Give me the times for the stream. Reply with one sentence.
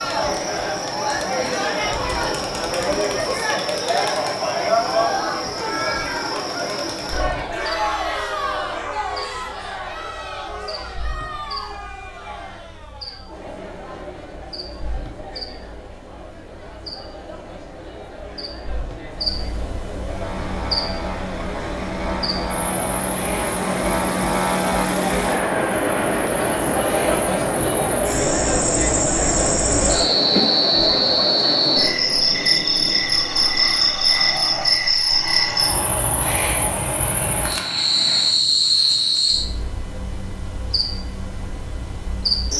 The stream can't be heard in this clip.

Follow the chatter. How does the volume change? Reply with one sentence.
The volume of the chatter goes down, then up.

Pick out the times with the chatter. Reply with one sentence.
You can hear the chatter from 0.0 to 31.9 s.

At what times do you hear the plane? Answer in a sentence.
The plane can be heard from 20.1 to 38.5 s.